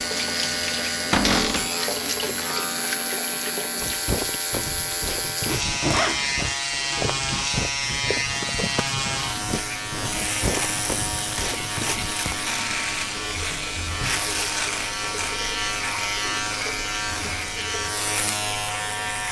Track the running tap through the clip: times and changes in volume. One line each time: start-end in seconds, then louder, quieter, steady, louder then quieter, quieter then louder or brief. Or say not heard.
0.0-19.2 quieter.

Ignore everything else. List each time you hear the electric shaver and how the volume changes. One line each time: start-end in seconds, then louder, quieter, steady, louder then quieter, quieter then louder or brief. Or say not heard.
0.0-19.2 steady.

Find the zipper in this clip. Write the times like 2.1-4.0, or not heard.
5.5-6.5.